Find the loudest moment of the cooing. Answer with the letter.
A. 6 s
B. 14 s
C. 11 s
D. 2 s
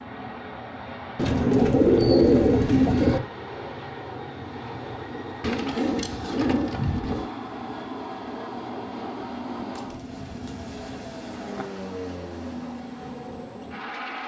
D.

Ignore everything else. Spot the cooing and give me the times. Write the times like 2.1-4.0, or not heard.
1.1-3.2, 5.4-7.3, 9.7-11.7.